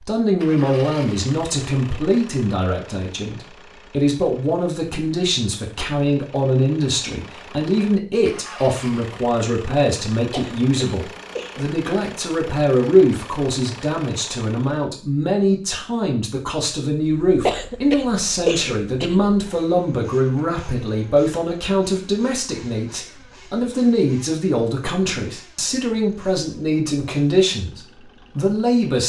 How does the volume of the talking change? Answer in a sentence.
The loudness of the talking stays about the same.